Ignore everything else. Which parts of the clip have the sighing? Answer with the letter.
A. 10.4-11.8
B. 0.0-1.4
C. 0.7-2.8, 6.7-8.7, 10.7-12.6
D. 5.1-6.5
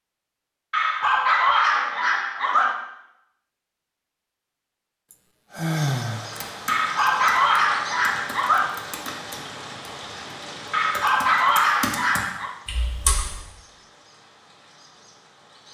D.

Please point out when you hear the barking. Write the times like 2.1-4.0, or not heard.
0.7-2.8, 6.7-8.7, 10.7-12.6.